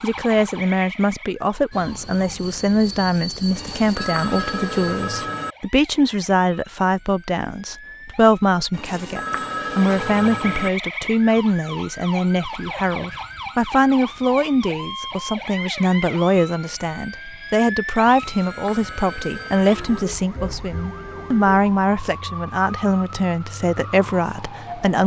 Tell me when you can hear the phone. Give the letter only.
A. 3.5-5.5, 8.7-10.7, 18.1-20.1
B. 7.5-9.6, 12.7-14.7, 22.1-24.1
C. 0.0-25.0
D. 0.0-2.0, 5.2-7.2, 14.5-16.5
A.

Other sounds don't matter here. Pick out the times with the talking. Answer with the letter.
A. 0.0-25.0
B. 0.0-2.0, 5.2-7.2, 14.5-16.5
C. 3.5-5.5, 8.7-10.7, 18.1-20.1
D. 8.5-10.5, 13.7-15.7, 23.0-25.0
A.